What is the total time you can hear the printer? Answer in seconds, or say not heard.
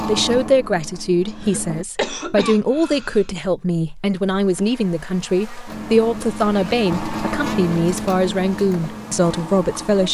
6 s.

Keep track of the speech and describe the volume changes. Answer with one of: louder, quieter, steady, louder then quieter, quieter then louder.
steady.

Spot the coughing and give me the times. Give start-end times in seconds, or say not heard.
1.2-3.2.